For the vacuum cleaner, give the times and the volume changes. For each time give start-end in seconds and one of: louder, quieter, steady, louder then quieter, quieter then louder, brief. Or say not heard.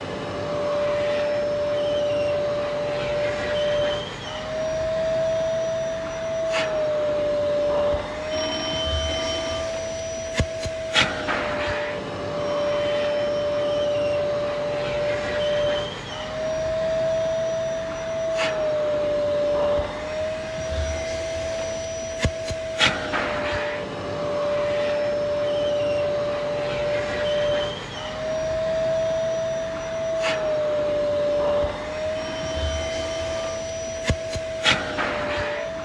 0.0-35.8 steady.